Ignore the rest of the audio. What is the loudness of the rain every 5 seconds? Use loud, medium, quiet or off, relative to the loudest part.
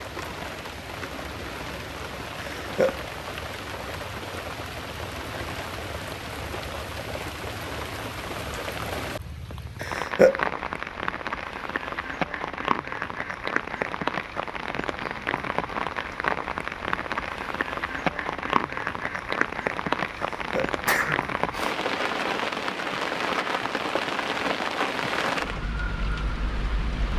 medium, medium, loud, loud, loud, loud.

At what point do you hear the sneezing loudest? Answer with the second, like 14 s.
10 s.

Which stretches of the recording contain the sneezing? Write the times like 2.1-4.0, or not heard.
2.4-3.0, 9.8-10.4, 20.4-21.8.